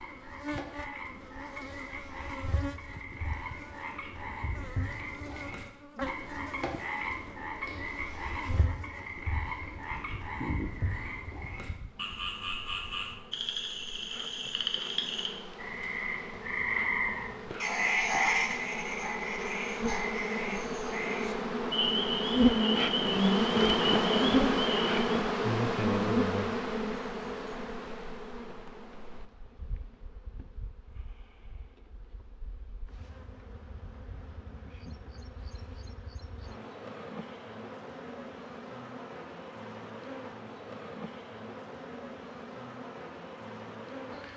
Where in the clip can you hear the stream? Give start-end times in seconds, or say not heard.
not heard.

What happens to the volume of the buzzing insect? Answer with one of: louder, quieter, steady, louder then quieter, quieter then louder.
louder then quieter.